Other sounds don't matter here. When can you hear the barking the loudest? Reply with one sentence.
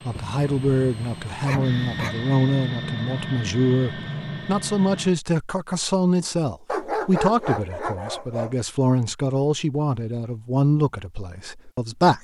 The loudest moment of the barking is at 7 seconds.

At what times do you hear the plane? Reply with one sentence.
You can hear the plane from 0.0 to 5.2 s.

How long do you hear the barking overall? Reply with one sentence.
The barking can be heard for 4 seconds in total.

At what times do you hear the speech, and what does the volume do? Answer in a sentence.
You can hear the speech from 0.0 to 12.1 s, at a steady volume.